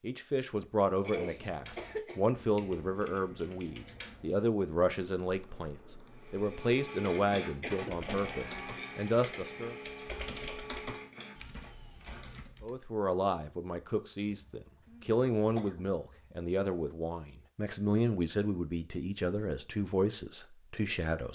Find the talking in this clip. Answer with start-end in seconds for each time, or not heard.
0.0-9.8, 12.6-21.3.